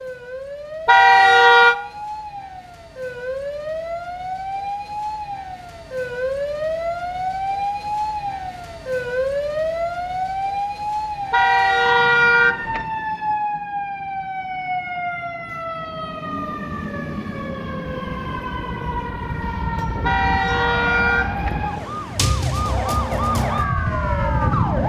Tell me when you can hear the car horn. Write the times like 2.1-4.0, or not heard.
0.8-1.8, 11.3-12.8, 20.0-21.6.